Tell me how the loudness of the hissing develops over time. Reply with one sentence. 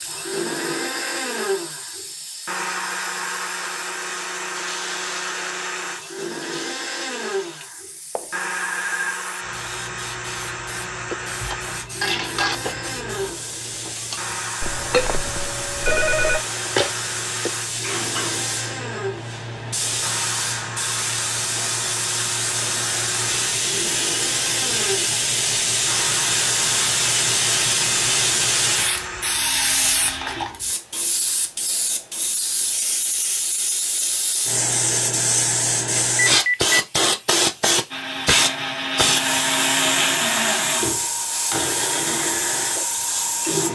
The loudness of the hissing goes up.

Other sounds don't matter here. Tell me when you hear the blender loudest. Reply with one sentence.
The volume of the blender peaks at 40 seconds.